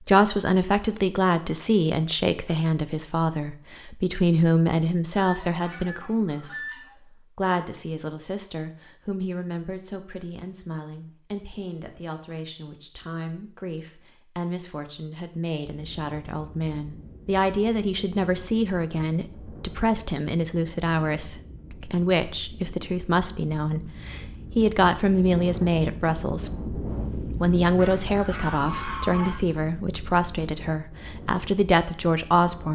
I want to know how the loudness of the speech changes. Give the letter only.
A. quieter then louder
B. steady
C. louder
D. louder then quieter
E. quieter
A.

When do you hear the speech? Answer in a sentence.
The speech can be heard from 0.0 to 32.7 s.